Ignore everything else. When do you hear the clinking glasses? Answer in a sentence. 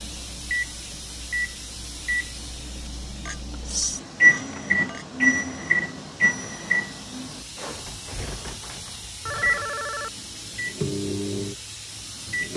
You can hear the clinking glasses from 3.2 to 5.0 s.